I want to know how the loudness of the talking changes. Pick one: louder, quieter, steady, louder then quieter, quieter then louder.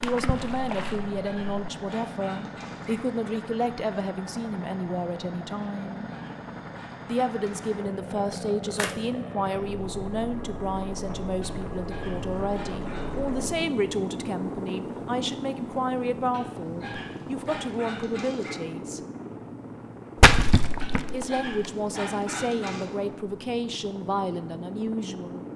steady.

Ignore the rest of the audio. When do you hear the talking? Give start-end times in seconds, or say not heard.
0.0-6.1, 7.0-19.0, 21.1-25.4.